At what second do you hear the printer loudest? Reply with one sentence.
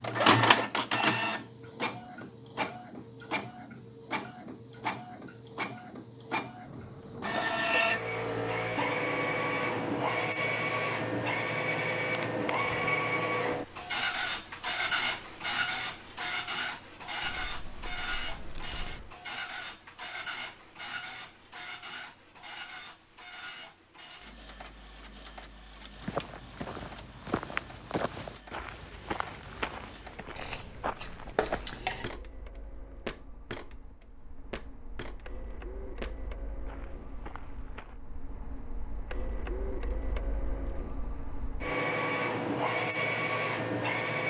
The loudest moment of the printer is at 1 second.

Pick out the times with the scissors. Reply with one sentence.
You can hear the scissors from 6.7 to 8.0 s, from 17.2 to 19.1 s and from 30.4 to 32.1 s.